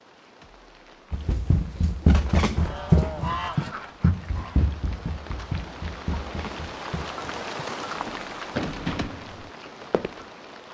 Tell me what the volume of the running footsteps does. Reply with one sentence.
The loudness of the running footsteps goes down, then up.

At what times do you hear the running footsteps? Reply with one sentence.
You can hear the running footsteps from 1.1 to 10.2 s.